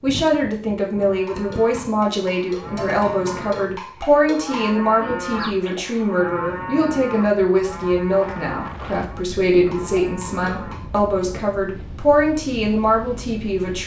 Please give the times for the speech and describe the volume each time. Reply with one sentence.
You can hear the speech from 0.0 to 13.8 s, at a steady volume.